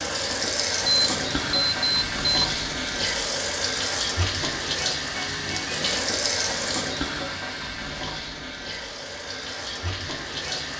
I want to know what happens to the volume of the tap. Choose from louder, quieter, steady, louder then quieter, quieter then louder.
quieter.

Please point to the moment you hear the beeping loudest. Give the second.
1 s.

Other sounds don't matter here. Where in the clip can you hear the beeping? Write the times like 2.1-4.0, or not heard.
0.8-2.5.